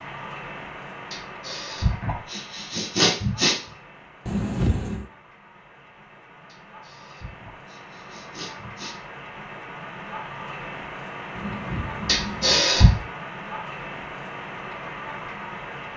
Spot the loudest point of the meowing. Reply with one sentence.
The volume of the meowing peaks at 5 seconds.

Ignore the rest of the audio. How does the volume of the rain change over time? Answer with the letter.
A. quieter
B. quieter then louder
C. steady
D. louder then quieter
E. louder
B.